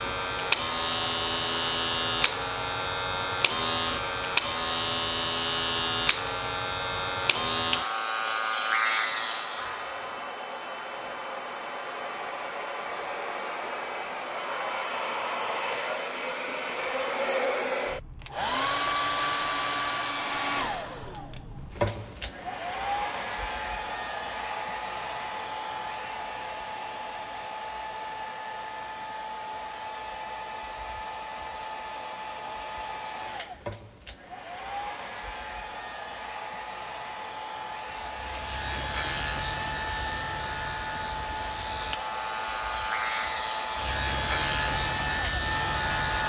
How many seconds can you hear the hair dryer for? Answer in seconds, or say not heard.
46 s.